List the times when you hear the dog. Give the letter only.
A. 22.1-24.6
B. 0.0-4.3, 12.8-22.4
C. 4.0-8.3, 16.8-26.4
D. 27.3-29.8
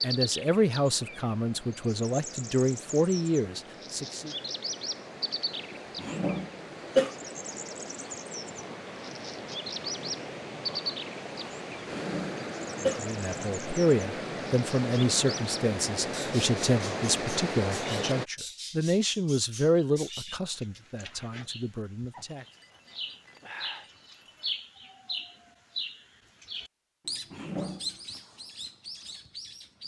A.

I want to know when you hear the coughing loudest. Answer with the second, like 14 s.
7 s.